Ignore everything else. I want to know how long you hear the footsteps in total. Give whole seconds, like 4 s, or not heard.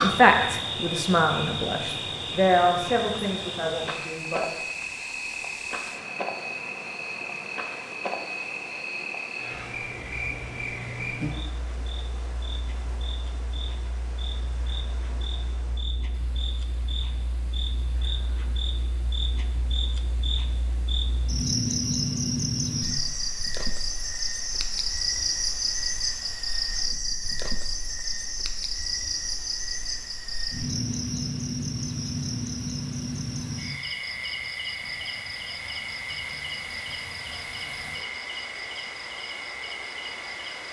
not heard.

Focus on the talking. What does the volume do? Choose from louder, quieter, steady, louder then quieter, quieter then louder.
louder then quieter.